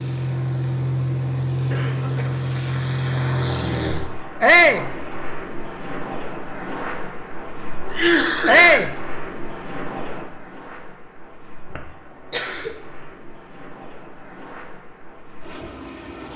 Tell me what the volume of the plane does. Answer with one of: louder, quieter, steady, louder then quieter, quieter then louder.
quieter.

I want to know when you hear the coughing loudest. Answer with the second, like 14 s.
8 s.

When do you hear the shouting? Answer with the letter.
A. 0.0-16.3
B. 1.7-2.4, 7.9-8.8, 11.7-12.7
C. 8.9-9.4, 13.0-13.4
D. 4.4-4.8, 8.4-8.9
D.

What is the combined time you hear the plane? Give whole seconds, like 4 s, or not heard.
16 s.